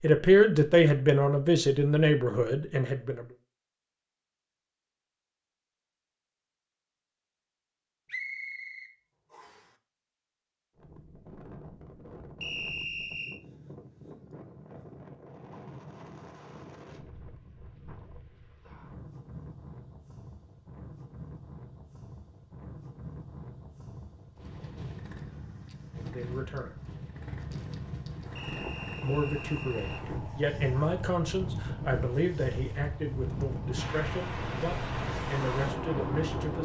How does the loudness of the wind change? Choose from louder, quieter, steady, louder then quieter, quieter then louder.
louder.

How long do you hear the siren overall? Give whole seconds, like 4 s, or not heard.
not heard.